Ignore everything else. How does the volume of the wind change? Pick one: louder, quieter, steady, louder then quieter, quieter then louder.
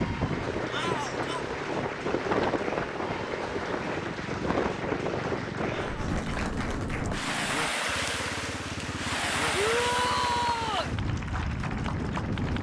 steady.